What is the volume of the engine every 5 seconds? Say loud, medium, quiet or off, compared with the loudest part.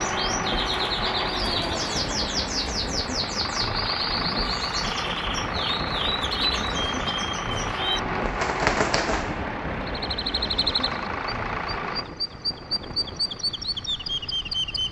loud, loud, medium.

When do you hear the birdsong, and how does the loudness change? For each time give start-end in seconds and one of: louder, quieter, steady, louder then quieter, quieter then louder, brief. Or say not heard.
0.0-14.8 steady.